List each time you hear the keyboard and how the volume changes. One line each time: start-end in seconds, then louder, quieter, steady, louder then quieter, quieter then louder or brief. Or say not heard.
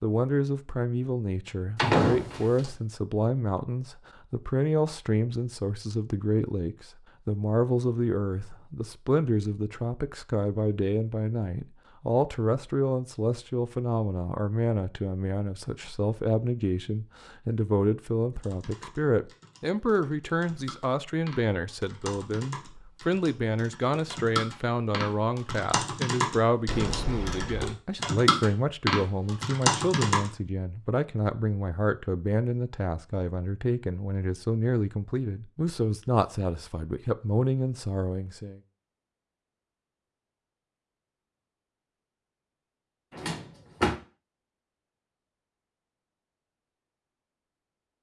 18.4-30.3 louder.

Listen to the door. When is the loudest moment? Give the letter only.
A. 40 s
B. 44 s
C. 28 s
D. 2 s
D.